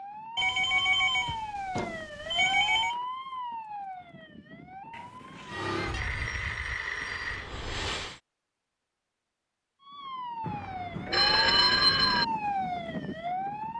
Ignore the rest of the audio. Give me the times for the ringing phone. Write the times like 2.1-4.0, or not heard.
0.3-3.0, 4.9-7.5, 10.4-12.2.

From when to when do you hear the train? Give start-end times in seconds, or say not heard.
5.5-8.2.